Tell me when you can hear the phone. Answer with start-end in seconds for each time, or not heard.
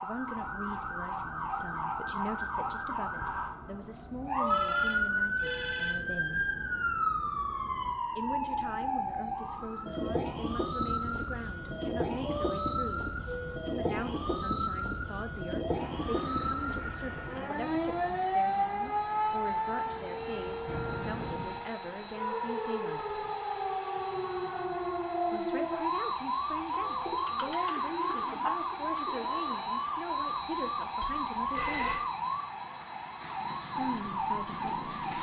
4.4-6.0, 20.6-21.6, 31.0-32.0.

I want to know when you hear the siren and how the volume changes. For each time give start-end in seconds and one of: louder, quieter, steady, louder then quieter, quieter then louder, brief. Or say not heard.
0.0-35.1 steady.